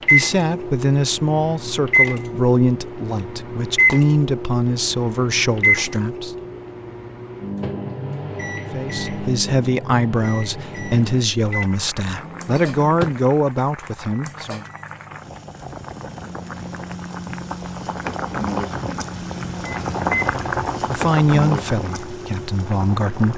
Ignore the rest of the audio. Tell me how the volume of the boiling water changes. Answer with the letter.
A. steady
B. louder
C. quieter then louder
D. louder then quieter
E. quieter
B.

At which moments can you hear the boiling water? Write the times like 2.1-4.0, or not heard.
10.7-23.3.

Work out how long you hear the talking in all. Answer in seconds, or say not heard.
15 s.